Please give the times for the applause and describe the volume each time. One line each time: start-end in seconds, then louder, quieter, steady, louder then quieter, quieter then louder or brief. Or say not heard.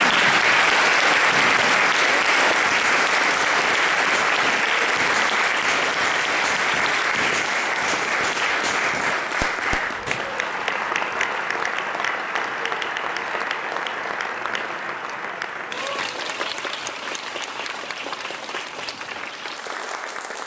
0.0-20.4 quieter.